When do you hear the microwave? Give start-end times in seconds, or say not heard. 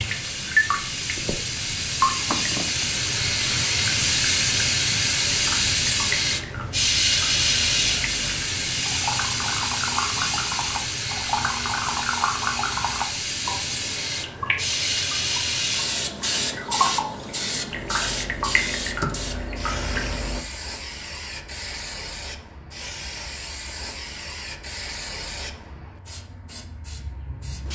not heard.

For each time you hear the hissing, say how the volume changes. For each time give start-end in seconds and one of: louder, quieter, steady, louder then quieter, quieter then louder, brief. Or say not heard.
0.0-27.7 quieter.